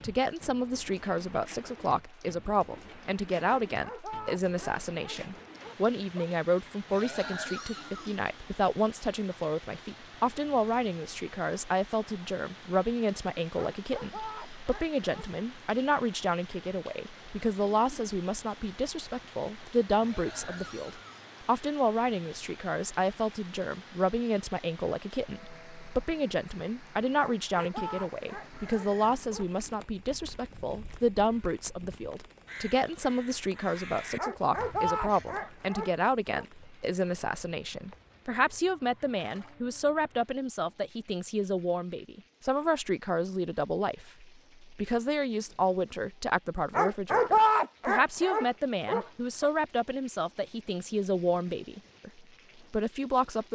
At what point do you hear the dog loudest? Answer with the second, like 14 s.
47 s.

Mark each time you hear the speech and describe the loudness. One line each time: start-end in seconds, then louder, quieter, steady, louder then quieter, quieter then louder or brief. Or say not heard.
0.0-52.1 steady
52.7-53.4 brief.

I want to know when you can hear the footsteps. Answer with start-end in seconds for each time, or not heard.
not heard.